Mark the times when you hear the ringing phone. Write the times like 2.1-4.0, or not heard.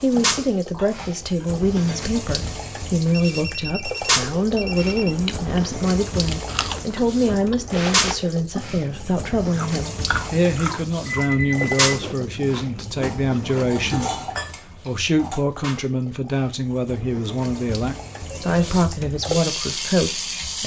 3.1-5.2, 11.1-11.9, 18.1-18.8.